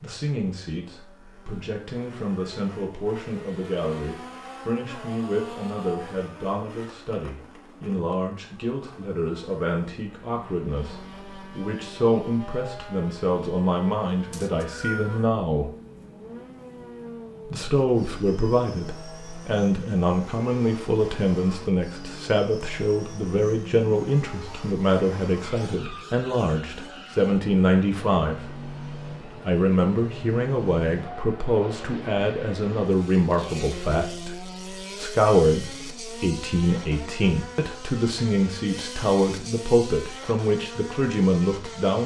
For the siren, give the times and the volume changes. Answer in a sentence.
You can't hear the siren here.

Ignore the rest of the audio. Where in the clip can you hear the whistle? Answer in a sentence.
You can hear the whistle from 14.3 to 15.2 s.